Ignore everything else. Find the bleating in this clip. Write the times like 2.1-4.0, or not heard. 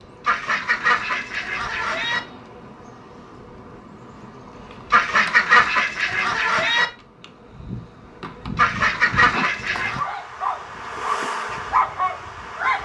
not heard.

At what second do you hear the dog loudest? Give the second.
12 s.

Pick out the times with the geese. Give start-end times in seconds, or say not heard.
0.2-2.2, 4.9-6.8, 8.6-10.1.